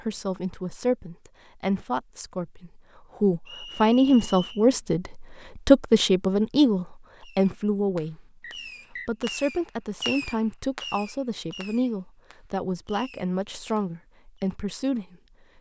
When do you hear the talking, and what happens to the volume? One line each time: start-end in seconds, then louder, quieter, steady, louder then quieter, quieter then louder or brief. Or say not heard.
0.0-15.2 louder then quieter.